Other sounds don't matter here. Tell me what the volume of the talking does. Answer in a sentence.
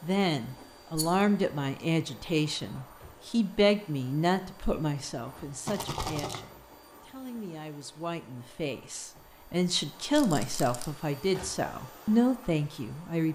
The loudness of the talking goes down, then up.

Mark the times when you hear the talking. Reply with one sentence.
The talking can be heard from 0.0 to 13.3 s.